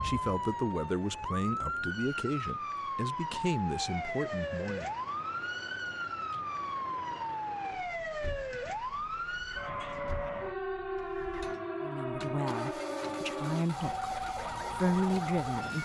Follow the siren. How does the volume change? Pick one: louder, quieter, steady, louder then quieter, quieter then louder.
steady.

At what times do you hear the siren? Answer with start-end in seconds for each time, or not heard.
0.0-15.8.